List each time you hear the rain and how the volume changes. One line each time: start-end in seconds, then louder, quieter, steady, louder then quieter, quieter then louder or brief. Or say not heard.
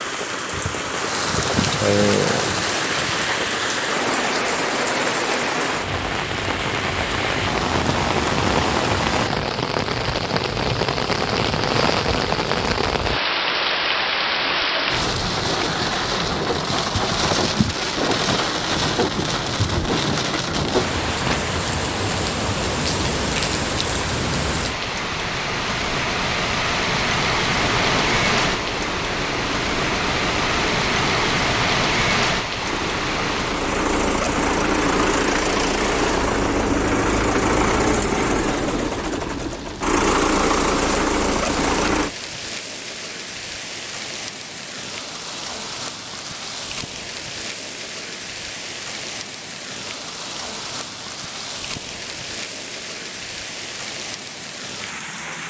0.0-55.4 quieter.